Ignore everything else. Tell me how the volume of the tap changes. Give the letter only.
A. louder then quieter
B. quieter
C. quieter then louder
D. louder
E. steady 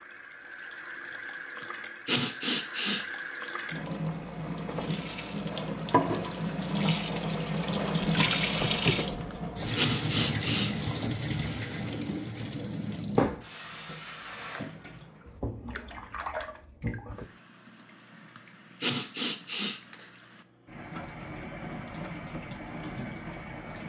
A.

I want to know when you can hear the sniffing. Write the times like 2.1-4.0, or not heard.
1.6-3.0, 9.3-10.8, 18.4-20.1.